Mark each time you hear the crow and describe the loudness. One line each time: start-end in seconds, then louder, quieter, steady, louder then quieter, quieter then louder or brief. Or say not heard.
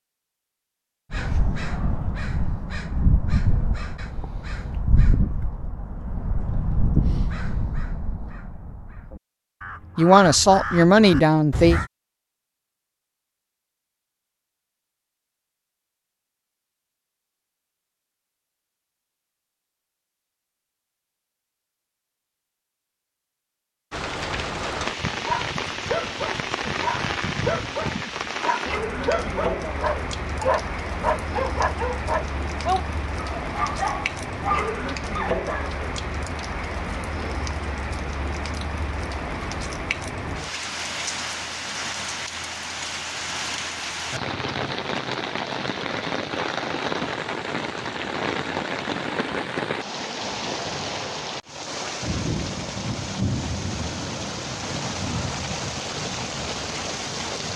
1.1-11.9 quieter then louder.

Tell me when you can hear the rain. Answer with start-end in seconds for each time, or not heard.
23.9-57.5.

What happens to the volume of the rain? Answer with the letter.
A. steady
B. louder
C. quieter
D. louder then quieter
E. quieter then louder
A.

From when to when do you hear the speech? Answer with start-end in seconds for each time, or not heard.
9.9-11.8.